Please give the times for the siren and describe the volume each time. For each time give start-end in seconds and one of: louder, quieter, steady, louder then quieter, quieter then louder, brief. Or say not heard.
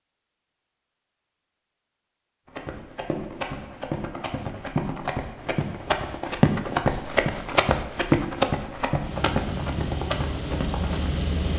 not heard.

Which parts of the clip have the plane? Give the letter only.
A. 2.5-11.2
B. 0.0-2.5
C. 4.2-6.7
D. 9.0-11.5
D.